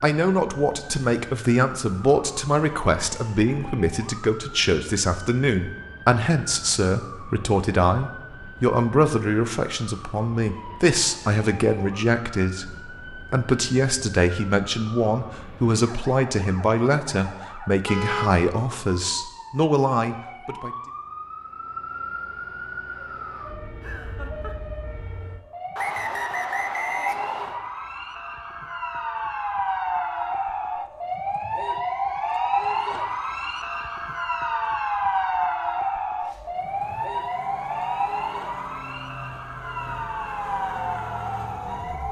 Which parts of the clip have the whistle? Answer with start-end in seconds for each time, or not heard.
25.8-27.6.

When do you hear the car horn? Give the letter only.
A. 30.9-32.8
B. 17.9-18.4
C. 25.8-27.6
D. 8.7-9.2
B.